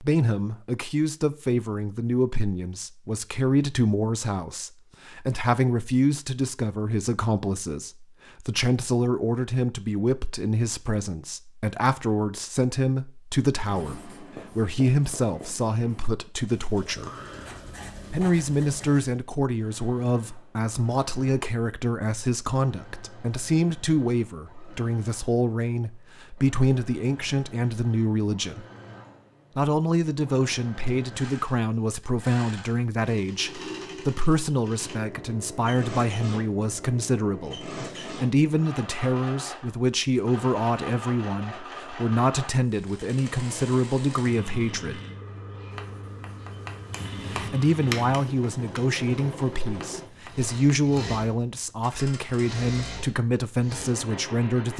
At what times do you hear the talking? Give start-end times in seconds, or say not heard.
0.0-17.1, 18.1-28.6, 29.6-45.0, 47.3-54.7.